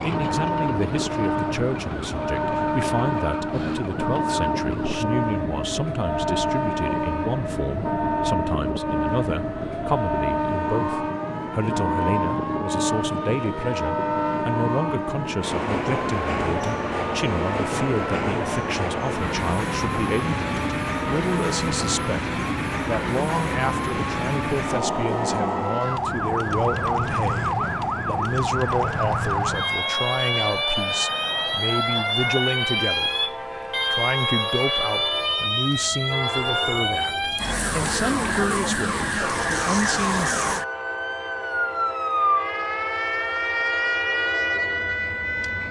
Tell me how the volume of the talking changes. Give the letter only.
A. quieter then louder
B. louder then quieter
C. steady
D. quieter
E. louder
C.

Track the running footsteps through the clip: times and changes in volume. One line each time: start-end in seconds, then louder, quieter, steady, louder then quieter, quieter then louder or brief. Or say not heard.
not heard.